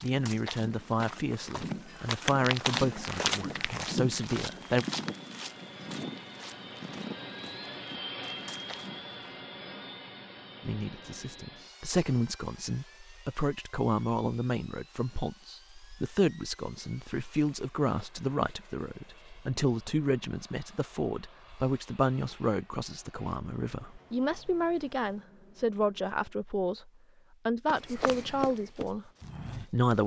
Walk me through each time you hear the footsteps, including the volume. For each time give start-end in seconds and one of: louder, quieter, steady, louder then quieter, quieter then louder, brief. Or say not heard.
0.0-9.4 louder then quieter
27.6-30.0 brief.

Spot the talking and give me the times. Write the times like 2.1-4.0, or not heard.
0.0-4.8, 10.7-30.0.